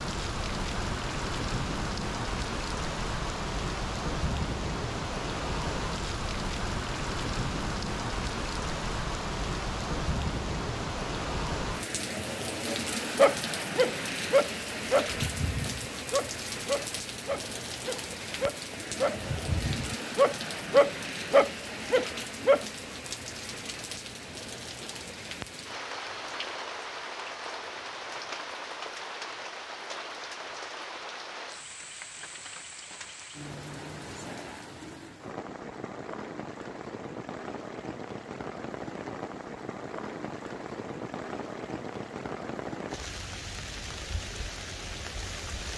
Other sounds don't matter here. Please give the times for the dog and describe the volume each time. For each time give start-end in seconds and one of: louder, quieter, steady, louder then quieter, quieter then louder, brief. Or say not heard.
12.7-22.6 quieter then louder.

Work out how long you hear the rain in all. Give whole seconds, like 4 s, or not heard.
46 s.